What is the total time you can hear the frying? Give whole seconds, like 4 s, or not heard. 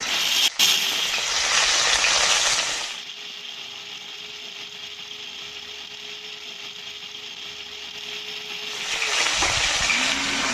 5 s.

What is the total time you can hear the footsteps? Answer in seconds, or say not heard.
not heard.